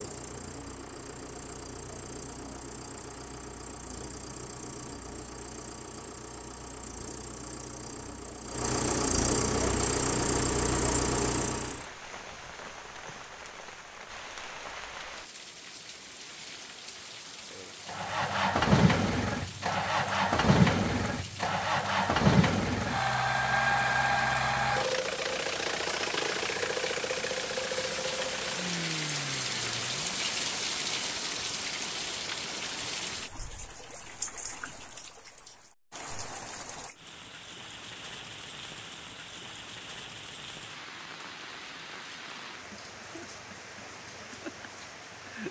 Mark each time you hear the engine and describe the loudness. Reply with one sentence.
The engine can be heard from 0.0 to 11.8 s, getting louder; and from 17.9 to 30.2 s, getting quieter.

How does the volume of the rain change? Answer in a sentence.
The loudness of the rain goes up, then down.